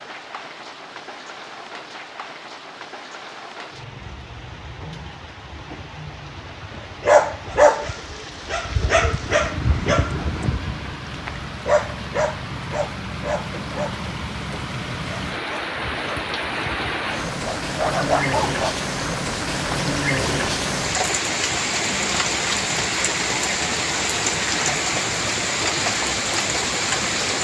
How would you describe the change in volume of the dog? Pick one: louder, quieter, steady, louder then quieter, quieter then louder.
quieter then louder.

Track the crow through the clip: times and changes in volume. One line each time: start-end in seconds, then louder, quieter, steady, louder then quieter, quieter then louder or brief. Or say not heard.
not heard.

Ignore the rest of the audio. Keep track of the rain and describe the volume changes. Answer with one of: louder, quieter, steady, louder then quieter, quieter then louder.
louder.